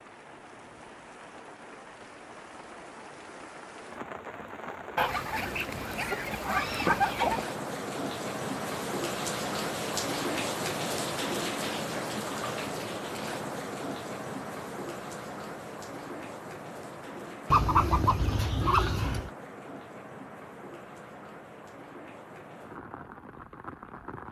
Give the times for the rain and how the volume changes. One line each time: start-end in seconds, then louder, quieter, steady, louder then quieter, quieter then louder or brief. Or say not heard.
0.0-24.2 louder then quieter.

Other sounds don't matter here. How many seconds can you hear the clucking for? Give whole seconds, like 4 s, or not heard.
4 s.